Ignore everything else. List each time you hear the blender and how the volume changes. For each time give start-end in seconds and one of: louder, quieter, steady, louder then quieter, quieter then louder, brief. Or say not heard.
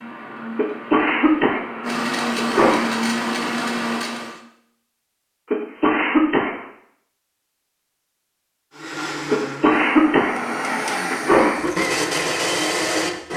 0.0-4.4 louder
8.8-13.3 louder.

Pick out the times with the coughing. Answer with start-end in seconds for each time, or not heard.
0.6-2.9, 5.5-6.7, 9.3-11.7.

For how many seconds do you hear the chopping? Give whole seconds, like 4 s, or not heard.
not heard.